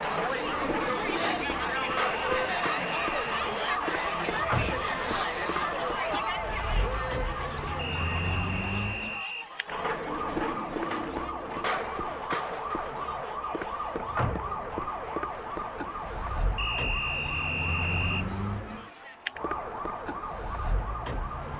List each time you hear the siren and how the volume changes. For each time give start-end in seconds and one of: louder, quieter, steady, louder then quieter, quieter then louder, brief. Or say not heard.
0.0-21.5 steady.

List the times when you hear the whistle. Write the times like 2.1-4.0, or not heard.
1.8-3.5, 7.8-9.5, 16.6-18.2.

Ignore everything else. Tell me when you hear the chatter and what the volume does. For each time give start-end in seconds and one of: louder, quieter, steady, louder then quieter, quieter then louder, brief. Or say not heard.
0.0-21.5 quieter.